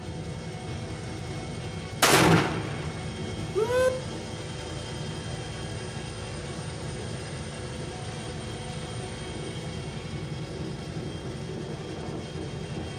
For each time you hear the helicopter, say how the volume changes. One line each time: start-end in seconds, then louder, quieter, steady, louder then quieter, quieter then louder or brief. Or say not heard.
0.0-12.9 steady.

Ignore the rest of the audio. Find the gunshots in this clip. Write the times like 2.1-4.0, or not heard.
2.0-3.9.